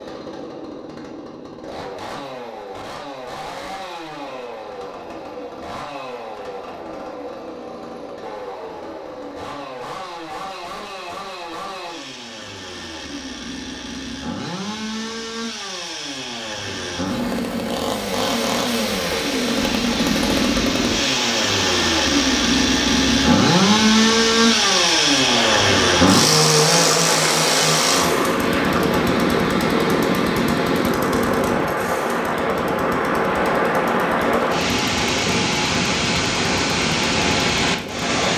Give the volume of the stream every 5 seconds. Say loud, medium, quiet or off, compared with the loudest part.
off, off, off, medium, medium, loud, loud, loud.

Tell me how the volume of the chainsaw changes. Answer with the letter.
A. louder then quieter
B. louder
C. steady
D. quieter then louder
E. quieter
A.